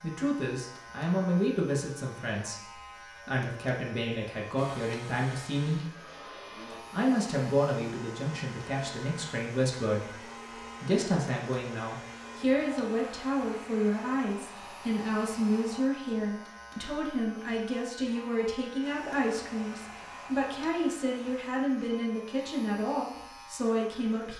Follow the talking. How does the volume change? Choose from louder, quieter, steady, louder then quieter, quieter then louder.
steady.